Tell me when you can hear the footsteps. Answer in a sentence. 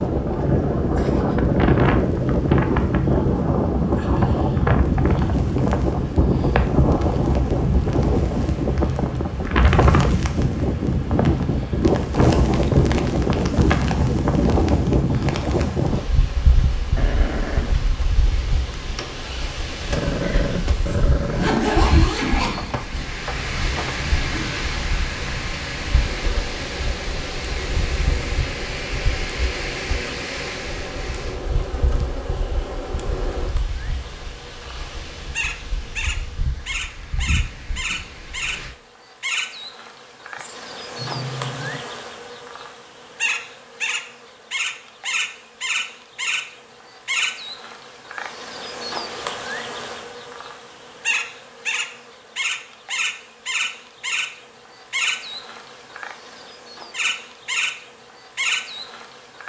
The footsteps can't be heard in this clip.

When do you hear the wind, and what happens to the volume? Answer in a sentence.
The wind can be heard from 0.0 to 38.8 s, getting quieter.